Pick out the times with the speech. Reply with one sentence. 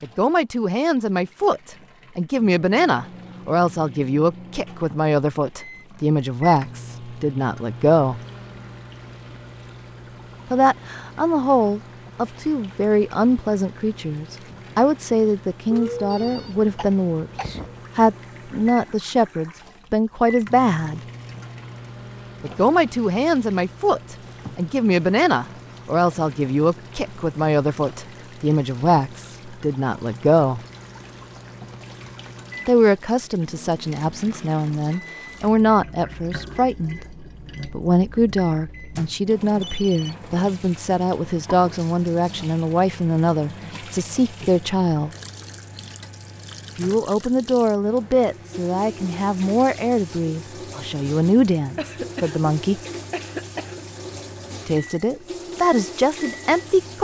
You can hear the speech from 0.0 to 8.2 s, from 10.5 to 21.0 s, from 22.4 to 30.6 s, from 32.6 to 45.1 s, from 46.8 to 52.8 s and from 54.6 to 56.9 s.